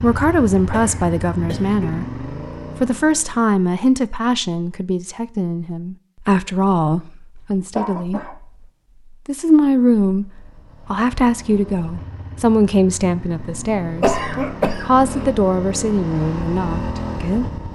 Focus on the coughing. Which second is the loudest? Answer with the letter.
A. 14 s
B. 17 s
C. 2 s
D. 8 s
A.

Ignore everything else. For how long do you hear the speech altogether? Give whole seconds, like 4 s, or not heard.
16 s.